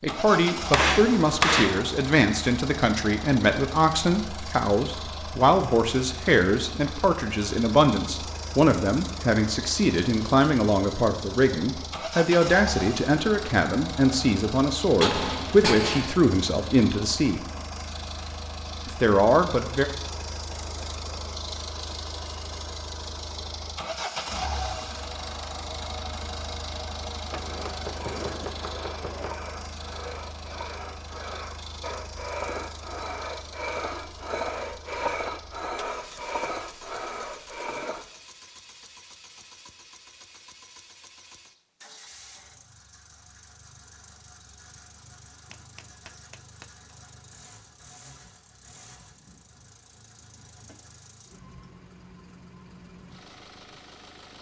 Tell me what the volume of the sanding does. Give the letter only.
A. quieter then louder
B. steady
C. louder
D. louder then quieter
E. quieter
C.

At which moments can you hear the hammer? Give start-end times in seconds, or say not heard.
0.7-1.9, 15.0-16.1, 27.3-29.4, 45.5-46.7.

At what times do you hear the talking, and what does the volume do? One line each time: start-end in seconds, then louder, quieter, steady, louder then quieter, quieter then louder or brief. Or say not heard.
0.0-17.4 steady
18.9-19.9 brief.